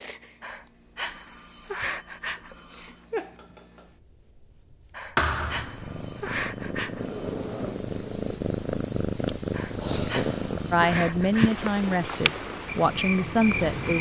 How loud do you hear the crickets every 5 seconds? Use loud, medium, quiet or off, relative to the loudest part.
medium, loud, loud.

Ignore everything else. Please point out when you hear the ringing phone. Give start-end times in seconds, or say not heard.
0.4-3.0, 4.9-7.2, 9.5-11.6.